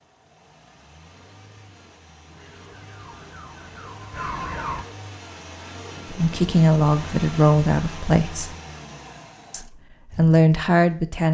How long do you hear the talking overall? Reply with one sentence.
You can hear the talking for 4 seconds altogether.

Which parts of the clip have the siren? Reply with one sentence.
The siren can be heard from 2.3 to 4.8 s.